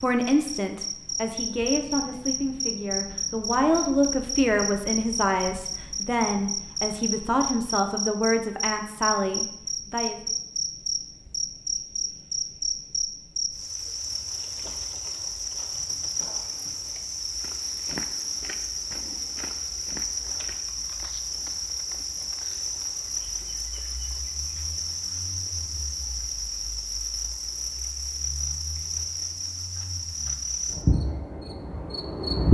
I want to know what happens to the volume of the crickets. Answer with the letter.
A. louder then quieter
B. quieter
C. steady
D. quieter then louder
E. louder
C.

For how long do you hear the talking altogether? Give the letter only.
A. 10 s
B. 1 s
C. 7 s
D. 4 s
A.